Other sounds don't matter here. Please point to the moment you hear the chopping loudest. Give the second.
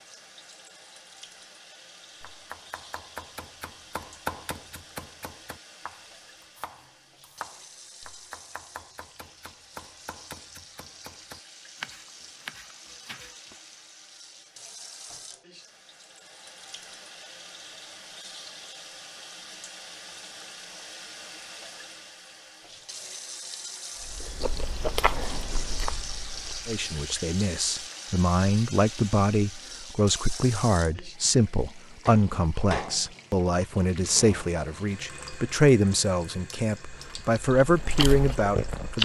4 s.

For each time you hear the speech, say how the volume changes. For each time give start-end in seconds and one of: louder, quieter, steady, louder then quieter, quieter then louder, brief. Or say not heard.
26.6-38.9 steady.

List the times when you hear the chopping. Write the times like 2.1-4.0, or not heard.
2.2-13.6.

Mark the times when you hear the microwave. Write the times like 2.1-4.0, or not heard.
not heard.